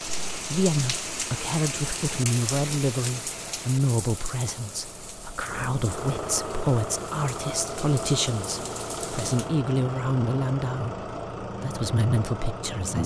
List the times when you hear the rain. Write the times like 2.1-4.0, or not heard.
0.0-9.5.